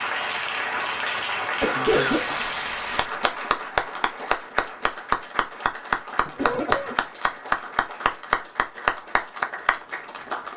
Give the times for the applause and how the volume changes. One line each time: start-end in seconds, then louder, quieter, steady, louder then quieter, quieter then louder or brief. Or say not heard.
0.0-10.5 steady.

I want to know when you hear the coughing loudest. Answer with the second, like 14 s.
2 s.